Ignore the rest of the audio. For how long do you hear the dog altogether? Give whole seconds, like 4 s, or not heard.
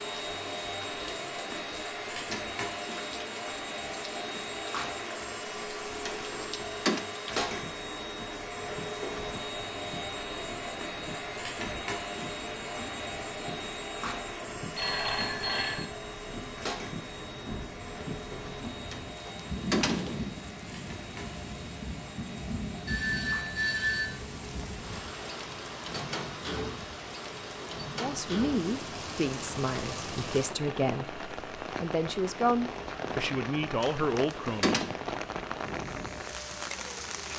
not heard.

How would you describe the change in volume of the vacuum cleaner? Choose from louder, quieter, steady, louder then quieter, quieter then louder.
quieter.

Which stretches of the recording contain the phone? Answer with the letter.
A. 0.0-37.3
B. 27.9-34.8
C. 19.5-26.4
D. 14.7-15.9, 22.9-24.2
D.